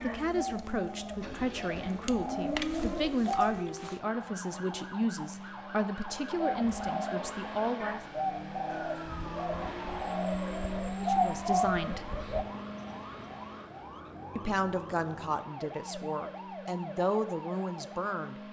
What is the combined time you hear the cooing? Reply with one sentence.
You can hear the cooing for 10 seconds altogether.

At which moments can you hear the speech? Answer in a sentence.
The speech can be heard from 0.0 to 8.0 s, from 10.9 to 12.1 s and from 14.3 to 18.4 s.